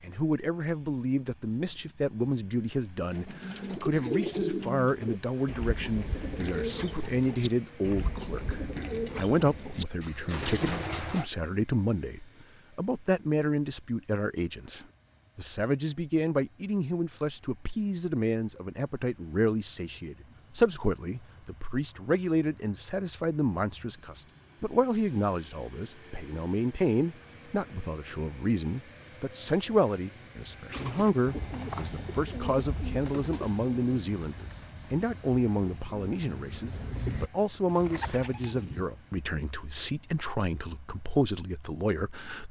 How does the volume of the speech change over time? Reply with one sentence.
The volume of the speech stays about the same.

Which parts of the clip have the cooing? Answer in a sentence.
You can hear the cooing from 3.1 to 11.3 s and from 30.7 to 38.9 s.